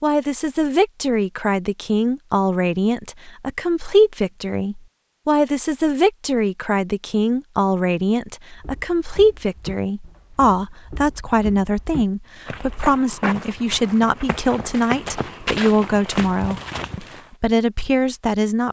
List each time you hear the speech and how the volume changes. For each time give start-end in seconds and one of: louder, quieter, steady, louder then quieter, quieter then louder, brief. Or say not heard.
0.0-18.6 steady.